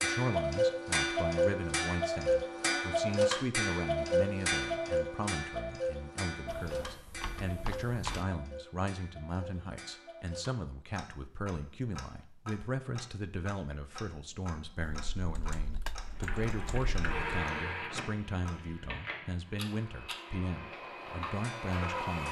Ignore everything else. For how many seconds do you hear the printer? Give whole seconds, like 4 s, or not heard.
6 s.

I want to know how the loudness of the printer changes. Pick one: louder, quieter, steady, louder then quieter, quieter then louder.
quieter then louder.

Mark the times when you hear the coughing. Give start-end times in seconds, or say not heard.
not heard.